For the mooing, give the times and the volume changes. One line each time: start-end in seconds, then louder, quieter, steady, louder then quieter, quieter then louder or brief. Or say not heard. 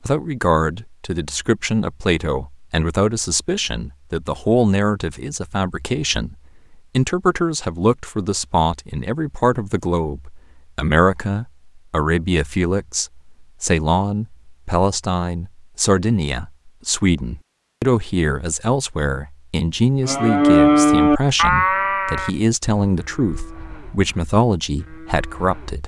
20.1-25.8 quieter.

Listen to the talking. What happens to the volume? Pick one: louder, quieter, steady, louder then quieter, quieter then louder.
steady.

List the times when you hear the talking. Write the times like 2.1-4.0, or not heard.
0.1-25.8.